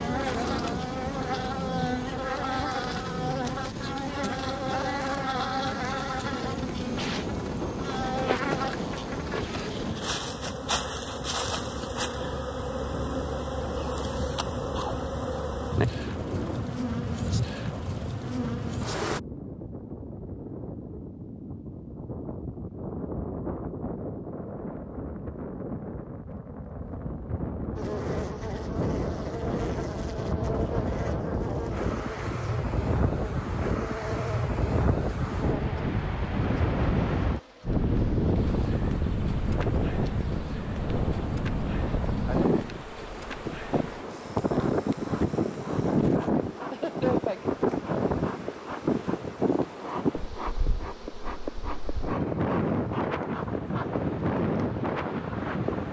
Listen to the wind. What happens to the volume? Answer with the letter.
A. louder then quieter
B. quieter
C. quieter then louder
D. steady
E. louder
E.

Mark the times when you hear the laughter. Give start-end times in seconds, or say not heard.
46.6-47.5.